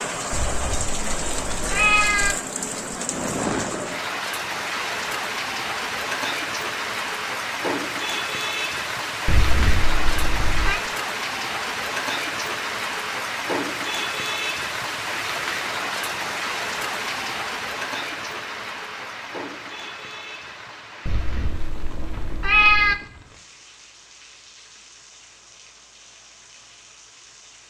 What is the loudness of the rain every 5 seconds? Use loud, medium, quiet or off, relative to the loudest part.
loud, loud, loud, loud, quiet, quiet.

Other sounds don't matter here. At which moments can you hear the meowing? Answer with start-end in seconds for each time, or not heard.
0.3-2.4, 9.2-10.8, 21.1-22.9.